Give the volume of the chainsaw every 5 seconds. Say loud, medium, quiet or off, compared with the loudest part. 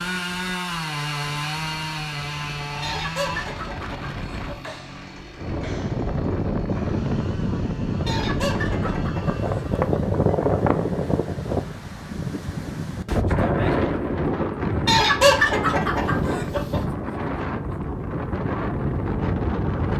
loud, quiet, off, off.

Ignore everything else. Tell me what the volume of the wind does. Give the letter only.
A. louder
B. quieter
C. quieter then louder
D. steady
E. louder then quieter
A.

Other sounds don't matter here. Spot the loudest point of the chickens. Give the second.
15 s.